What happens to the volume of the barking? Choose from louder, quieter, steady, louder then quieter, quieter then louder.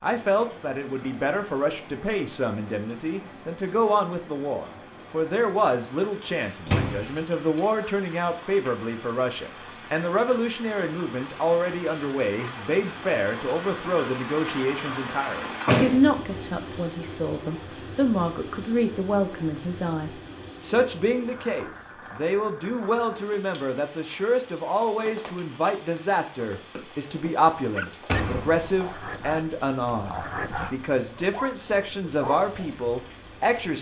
louder.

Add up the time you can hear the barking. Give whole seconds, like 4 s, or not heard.
5 s.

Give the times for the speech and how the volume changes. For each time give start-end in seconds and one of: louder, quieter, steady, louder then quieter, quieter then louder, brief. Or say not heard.
0.0-33.7 steady.